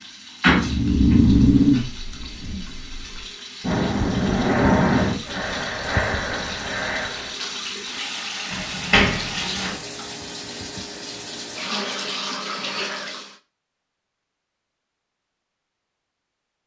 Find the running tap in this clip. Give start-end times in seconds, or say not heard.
0.0-13.4.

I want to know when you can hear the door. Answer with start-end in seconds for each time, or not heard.
0.4-1.1, 8.5-9.8.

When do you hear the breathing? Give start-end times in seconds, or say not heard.
0.6-7.4.